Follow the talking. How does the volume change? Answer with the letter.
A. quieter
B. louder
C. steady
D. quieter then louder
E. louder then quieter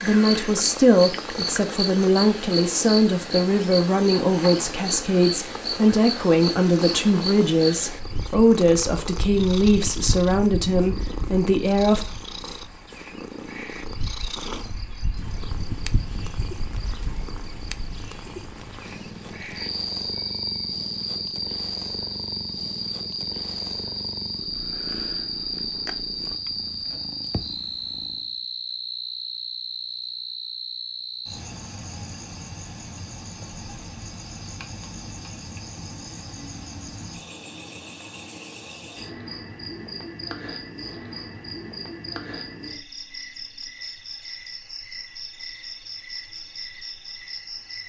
C.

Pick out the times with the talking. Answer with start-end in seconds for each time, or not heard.
0.0-12.1.